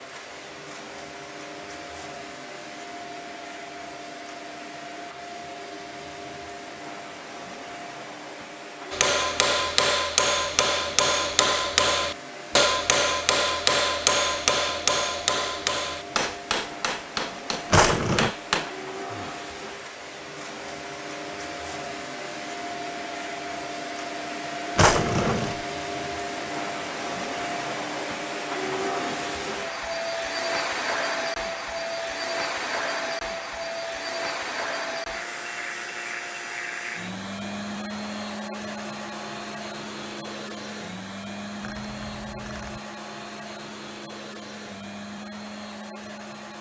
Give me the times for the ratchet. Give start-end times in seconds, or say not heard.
41.6-42.8.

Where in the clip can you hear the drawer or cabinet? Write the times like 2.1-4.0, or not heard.
17.7-18.3, 24.8-25.6.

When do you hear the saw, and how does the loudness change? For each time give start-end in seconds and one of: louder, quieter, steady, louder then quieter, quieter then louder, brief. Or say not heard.
not heard.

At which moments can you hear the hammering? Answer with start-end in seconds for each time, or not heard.
8.9-19.4.